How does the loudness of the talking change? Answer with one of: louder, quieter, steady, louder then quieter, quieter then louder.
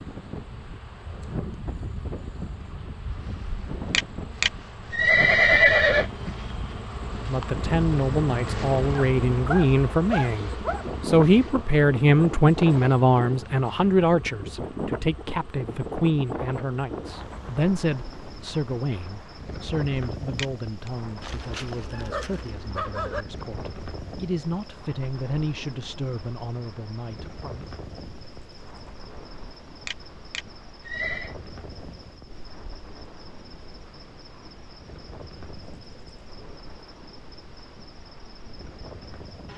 quieter.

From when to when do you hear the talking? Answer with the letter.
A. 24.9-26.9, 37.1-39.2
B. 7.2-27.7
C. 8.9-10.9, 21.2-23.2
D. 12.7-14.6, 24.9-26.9
B.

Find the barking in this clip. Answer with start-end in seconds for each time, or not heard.
8.9-10.9, 21.2-23.2.